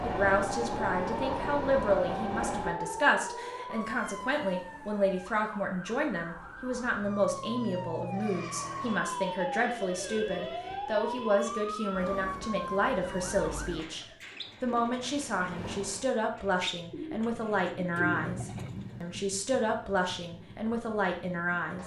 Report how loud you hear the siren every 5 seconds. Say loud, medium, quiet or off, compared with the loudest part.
loud, loud, loud, off, off.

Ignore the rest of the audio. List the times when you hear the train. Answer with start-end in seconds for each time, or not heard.
0.0-2.8, 14.3-16.1, 18.1-21.8.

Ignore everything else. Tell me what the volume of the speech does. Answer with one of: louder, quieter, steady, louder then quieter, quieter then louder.
steady.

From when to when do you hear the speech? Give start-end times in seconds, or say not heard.
0.0-21.8.